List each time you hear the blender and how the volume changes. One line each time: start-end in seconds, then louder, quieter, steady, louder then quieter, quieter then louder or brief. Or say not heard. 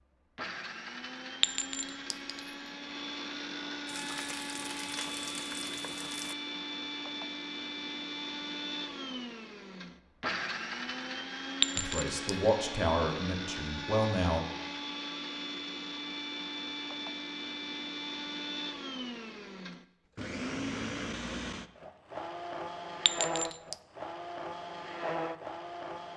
0.3-26.1 steady.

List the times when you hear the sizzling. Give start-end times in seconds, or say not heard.
3.9-6.3.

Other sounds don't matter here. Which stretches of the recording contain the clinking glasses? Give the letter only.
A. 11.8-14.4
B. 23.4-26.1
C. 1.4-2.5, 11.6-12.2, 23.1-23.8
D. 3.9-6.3
C.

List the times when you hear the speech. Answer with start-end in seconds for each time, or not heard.
11.8-14.4.